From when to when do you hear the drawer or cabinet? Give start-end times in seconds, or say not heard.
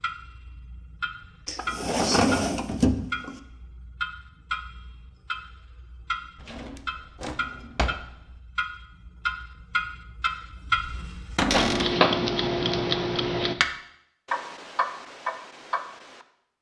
1.4-3.4, 6.4-8.1, 11.3-11.9.